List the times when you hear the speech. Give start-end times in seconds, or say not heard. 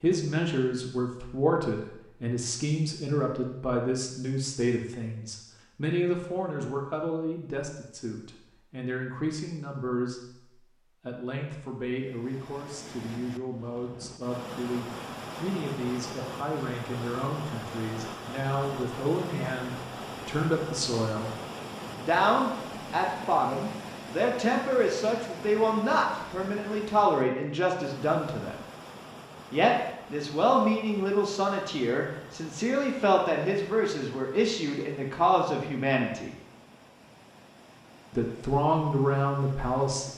0.0-21.4, 21.9-28.6, 29.5-36.3, 38.1-40.1.